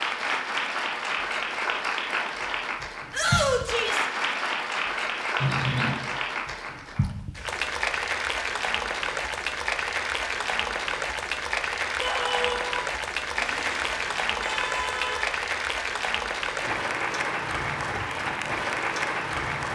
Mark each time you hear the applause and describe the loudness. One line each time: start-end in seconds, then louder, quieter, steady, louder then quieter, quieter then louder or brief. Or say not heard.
0.0-19.7 steady.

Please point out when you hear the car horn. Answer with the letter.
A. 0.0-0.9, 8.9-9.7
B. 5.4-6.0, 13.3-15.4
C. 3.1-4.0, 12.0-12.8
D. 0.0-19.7
B.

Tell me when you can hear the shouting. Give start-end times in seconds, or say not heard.
3.1-4.0, 12.0-12.8.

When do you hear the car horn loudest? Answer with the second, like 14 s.
6 s.